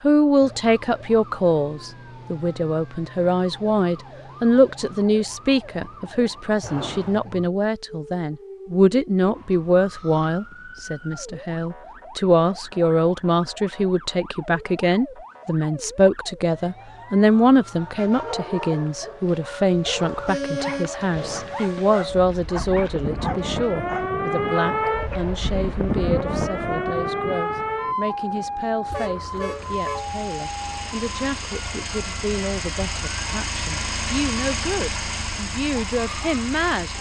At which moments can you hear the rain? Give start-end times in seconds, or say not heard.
not heard.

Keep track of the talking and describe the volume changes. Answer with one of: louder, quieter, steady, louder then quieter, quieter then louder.
quieter.